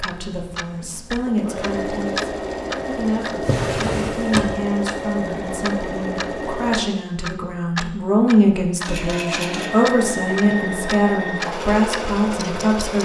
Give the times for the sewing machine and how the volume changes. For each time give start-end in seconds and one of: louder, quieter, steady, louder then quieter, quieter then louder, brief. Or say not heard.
0.0-6.8 louder
8.8-13.0 steady.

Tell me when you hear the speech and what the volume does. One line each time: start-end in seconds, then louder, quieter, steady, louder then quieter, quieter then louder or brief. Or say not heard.
0.0-13.0 louder.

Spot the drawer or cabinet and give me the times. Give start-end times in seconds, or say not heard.
3.4-4.5.